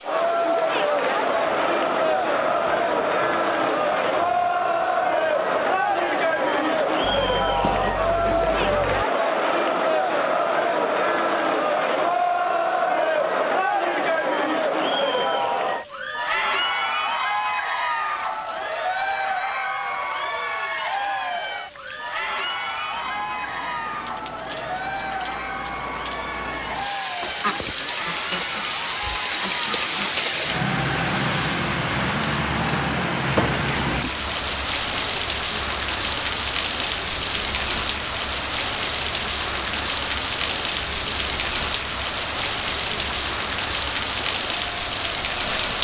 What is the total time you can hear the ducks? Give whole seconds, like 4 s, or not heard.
5 s.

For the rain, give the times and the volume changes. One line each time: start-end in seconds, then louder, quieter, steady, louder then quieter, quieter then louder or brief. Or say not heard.
0.0-45.7 louder.